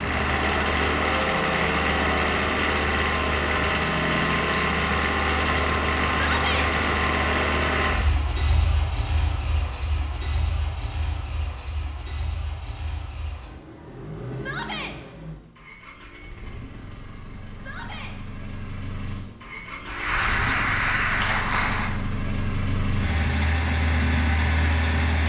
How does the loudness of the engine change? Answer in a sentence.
The volume of the engine goes down, then up.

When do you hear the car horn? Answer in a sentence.
You can't hear the car horn here.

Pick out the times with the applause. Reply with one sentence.
The applause can be heard from 19.9 to 22.0 s.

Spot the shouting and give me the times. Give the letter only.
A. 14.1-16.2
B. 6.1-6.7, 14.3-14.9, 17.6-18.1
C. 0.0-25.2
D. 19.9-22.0
B.